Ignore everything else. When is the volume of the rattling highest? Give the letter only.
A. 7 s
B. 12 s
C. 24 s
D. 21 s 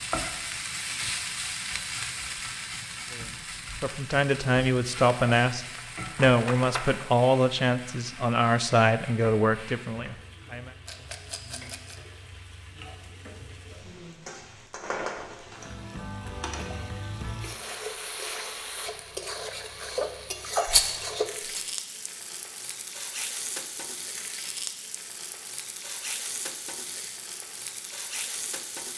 D.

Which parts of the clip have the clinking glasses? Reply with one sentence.
You can't hear the clinking glasses here.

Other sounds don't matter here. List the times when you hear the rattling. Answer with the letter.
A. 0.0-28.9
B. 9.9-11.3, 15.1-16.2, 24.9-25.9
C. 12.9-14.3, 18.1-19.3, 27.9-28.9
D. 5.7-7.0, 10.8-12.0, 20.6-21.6
D.